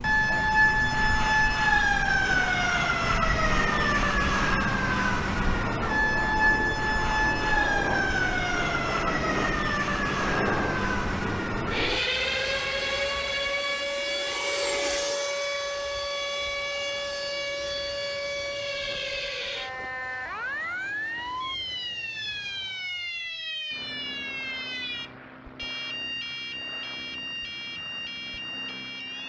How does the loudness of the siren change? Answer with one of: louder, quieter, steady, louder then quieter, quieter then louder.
quieter.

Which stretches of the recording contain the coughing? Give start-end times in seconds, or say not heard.
not heard.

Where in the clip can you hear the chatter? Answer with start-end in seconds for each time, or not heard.
not heard.